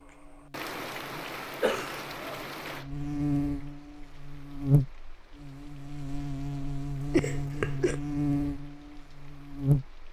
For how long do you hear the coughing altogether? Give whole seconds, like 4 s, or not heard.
2 s.